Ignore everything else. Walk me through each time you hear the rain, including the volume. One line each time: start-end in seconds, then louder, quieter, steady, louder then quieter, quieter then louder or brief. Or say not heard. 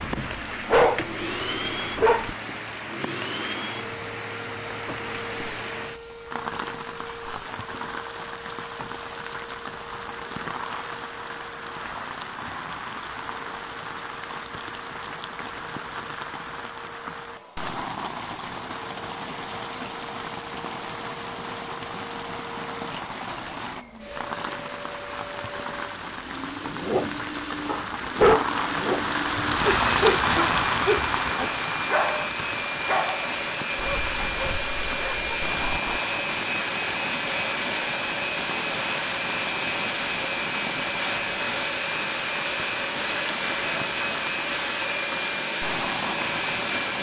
0.0-46.9 louder then quieter.